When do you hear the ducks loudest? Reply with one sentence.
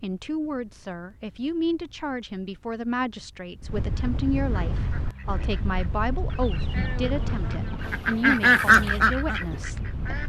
The volume of the ducks peaks at 9 seconds.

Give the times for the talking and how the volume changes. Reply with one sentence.
You can hear the talking from 0.0 to 10.2 s, at a steady volume.